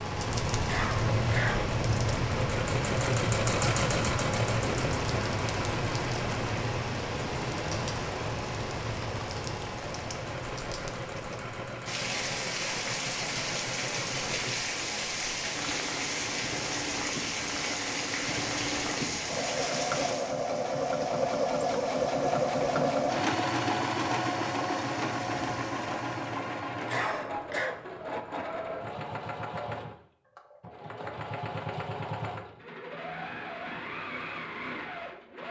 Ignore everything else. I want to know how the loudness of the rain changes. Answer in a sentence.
The loudness of the rain goes down.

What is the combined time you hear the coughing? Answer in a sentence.
You can hear the coughing for 2 seconds altogether.